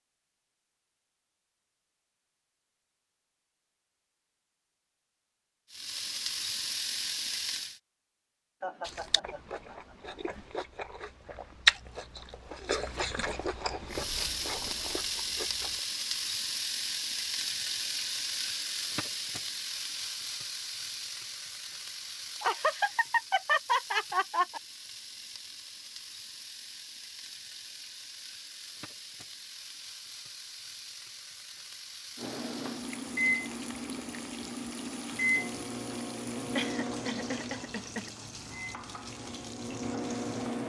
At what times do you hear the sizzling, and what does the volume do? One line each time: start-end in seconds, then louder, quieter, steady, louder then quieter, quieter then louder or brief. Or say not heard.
5.7-7.8 brief
13.8-40.6 quieter.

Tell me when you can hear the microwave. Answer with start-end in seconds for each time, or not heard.
32.1-40.6.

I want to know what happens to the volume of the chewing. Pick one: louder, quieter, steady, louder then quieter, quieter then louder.
louder then quieter.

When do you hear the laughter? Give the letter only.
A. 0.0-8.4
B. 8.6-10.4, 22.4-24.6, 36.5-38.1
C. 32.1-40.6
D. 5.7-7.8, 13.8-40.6
B.